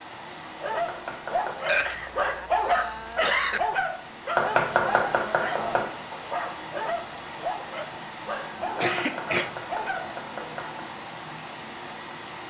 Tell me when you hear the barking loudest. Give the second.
3 s.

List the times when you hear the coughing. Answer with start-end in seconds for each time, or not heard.
1.6-3.6, 8.8-9.5.